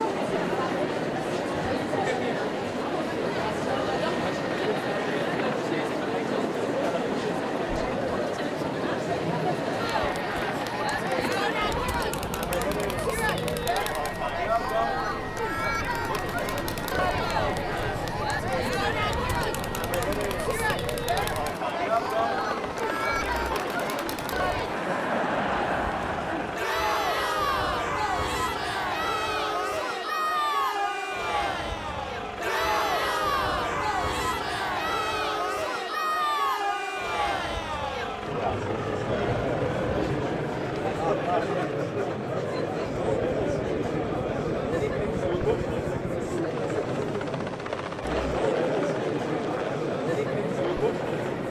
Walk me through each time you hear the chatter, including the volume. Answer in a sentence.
The chatter can be heard from 0.0 to 51.4 s, at a steady volume.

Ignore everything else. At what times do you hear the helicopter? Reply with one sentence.
The helicopter can be heard from 0.0 to 51.4 s.